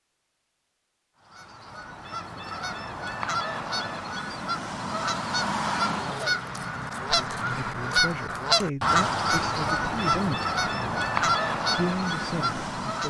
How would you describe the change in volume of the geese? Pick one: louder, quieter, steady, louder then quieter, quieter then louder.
louder.